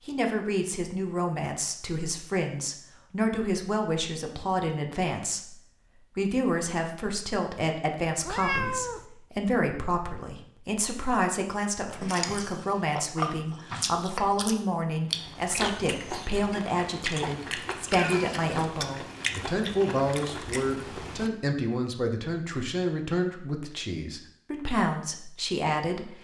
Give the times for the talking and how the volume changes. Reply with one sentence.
You can hear the talking from 0.1 to 26.1 s, at a steady volume.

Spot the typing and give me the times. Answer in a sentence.
You can't hear the typing here.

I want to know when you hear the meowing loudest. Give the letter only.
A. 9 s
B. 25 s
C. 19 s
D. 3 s
A.